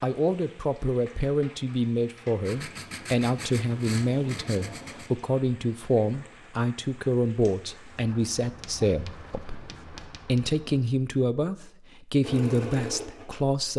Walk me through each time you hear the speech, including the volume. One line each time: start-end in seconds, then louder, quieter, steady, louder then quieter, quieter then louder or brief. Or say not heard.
0.0-13.7 steady.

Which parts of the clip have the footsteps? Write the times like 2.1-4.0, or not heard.
not heard.